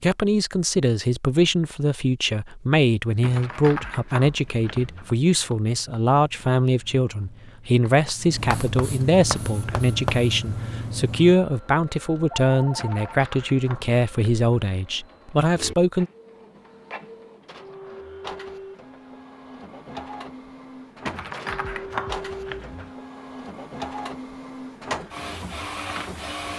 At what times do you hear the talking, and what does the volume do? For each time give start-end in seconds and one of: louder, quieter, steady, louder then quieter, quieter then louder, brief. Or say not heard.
0.0-16.1 steady.